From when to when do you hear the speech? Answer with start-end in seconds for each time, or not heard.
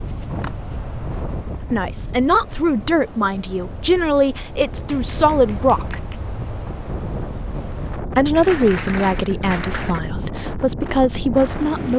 1.7-6.0, 8.2-11.9.